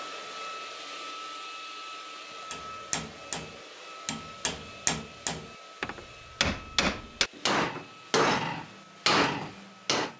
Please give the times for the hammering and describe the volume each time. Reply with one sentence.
The hammering can be heard from 2.5 to 10.1 s, getting louder.